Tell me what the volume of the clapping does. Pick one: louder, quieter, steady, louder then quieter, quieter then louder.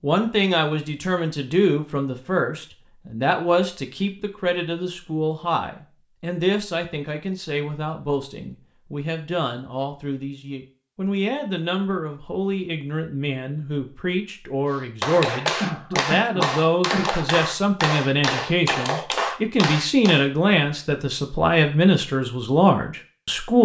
steady.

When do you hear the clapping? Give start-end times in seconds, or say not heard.
14.7-20.2.